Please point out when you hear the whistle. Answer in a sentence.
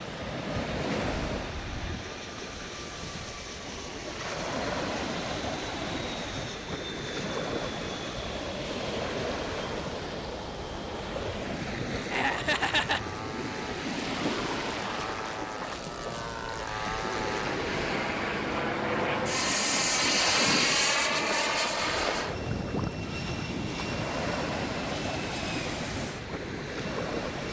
You can't hear the whistle here.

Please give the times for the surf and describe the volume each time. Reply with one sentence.
You can hear the surf from 0.0 to 27.4 s, at a steady volume.